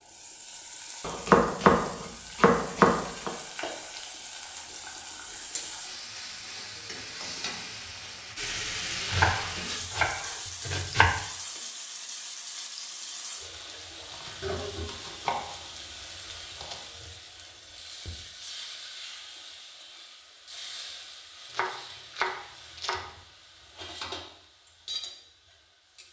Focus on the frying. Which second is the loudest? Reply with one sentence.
The loudest moment of the frying is at 9 seconds.